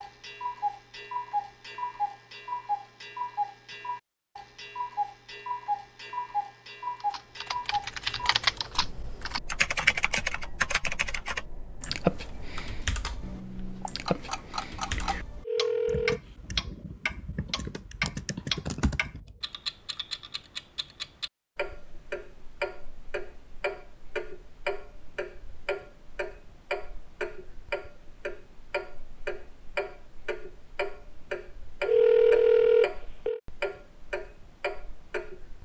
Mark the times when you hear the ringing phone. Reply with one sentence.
You can hear the ringing phone from 15.4 to 16.2 s and from 31.9 to 33.4 s.